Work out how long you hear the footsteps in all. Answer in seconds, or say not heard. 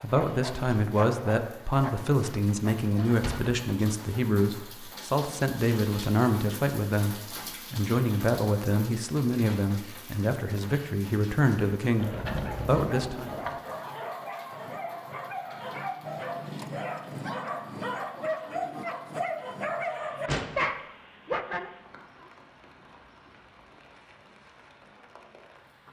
not heard.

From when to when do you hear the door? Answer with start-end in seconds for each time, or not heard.
3.0-4.0, 11.9-13.6, 19.9-20.6.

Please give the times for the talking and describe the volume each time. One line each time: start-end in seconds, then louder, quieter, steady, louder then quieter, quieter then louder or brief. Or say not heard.
0.0-13.3 steady.